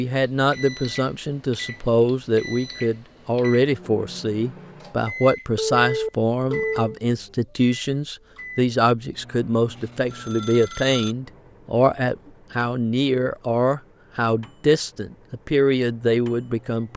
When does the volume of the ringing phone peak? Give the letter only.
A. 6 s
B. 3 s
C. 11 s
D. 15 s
A.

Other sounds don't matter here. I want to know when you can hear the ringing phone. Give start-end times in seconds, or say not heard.
5.5-7.0, 9.7-11.2.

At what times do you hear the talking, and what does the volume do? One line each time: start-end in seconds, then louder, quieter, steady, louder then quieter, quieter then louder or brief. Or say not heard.
0.0-16.9 steady.